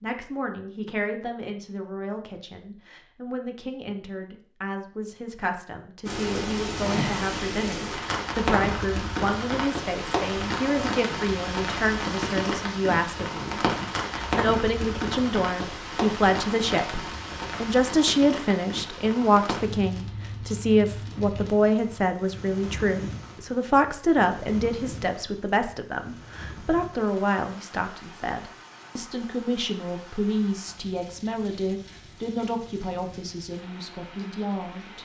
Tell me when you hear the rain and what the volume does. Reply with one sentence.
The rain can be heard from 6.0 to 35.0 s, getting quieter.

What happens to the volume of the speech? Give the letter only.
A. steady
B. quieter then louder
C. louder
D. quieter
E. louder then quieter
E.